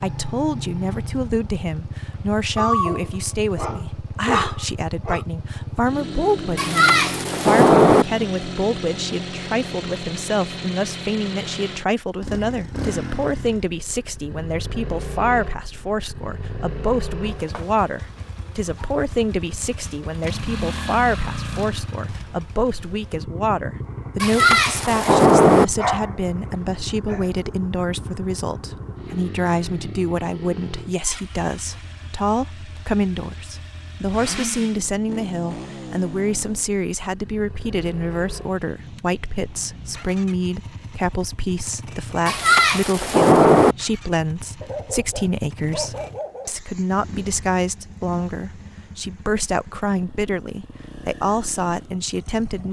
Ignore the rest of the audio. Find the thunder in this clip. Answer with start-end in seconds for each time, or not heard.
6.5-8.1, 24.2-25.6, 42.2-43.8.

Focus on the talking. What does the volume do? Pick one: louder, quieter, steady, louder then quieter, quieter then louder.
steady.